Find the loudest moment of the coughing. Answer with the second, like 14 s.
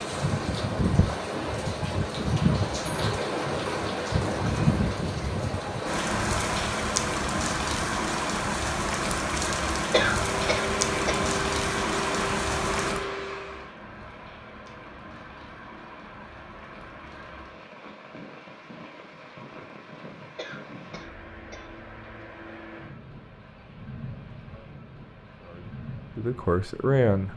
10 s.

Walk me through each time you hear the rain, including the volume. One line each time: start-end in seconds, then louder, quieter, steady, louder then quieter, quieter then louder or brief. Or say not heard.
0.0-27.3 quieter.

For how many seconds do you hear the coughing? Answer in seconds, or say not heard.
3 s.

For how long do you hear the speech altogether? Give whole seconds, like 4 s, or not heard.
2 s.